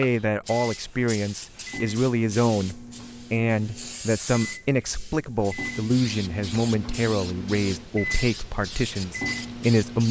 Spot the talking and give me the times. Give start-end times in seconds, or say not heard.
0.0-10.0.